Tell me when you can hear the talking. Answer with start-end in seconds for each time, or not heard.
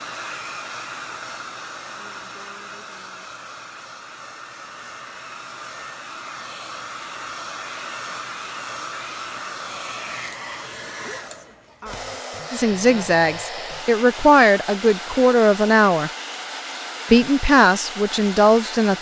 12.5-16.1, 17.1-18.9.